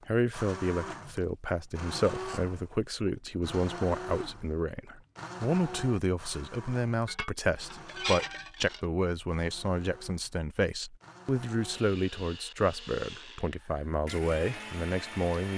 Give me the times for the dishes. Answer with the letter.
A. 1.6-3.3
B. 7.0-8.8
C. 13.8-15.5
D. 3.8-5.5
B.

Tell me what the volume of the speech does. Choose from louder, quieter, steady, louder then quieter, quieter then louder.
steady.